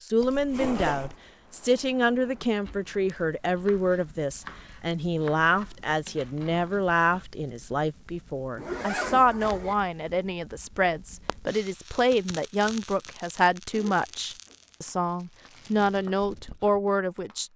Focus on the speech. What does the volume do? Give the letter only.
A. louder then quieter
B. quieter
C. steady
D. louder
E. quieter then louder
C.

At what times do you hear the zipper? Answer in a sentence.
The zipper can be heard from 0.2 to 1.1 s, from 8.6 to 9.8 s and from 13.7 to 14.6 s.